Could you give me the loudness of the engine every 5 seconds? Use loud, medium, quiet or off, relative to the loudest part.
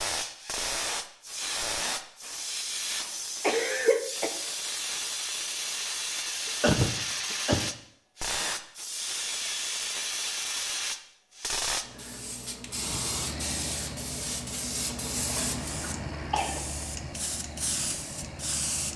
off, off, loud, loud.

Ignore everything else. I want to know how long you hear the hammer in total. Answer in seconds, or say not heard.
not heard.